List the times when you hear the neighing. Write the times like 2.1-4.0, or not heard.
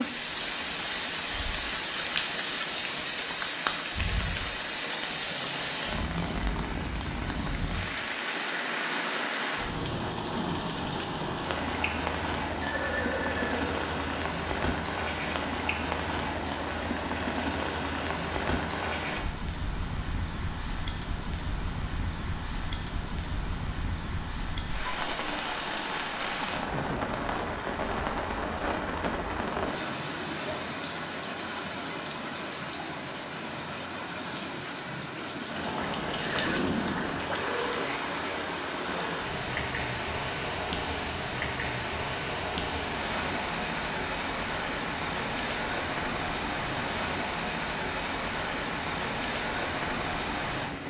12.6-13.8, 35.9-37.1.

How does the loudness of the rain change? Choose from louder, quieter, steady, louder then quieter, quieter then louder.
steady.